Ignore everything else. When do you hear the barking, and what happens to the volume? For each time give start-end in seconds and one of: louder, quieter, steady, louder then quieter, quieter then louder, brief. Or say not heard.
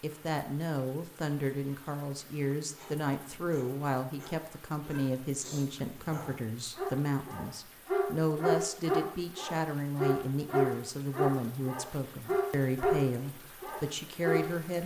2.8-13.0 louder
13.6-14.5 brief.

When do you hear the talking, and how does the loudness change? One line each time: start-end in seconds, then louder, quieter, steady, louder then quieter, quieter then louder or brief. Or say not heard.
0.0-14.8 steady.